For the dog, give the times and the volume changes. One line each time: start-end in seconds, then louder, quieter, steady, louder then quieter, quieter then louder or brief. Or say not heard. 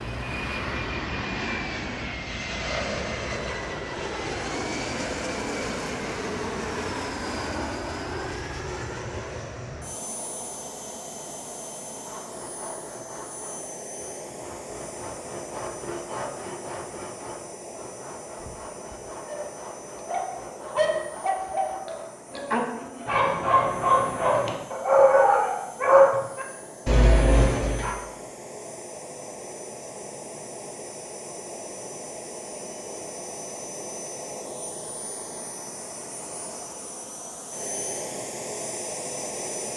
19.2-27.9 louder.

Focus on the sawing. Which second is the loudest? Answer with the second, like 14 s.
16 s.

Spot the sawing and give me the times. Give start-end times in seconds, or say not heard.
11.9-23.1.